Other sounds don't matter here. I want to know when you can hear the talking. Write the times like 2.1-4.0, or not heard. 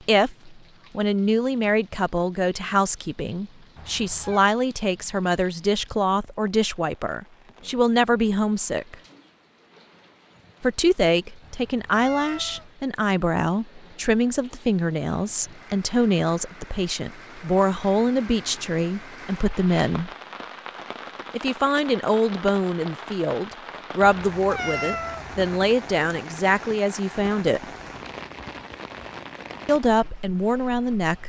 0.1-8.9, 10.6-20.1, 21.3-27.6, 29.6-31.2.